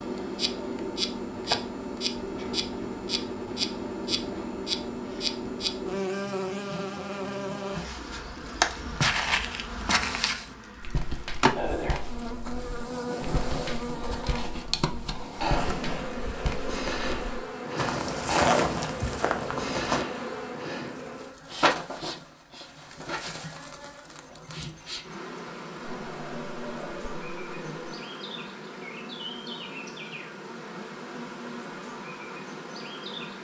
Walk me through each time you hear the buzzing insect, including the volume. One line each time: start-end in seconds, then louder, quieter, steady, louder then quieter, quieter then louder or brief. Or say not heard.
0.0-33.3 quieter.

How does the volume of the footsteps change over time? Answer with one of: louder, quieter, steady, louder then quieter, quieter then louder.
quieter then louder.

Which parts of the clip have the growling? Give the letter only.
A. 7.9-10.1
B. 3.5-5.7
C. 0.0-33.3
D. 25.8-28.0
D.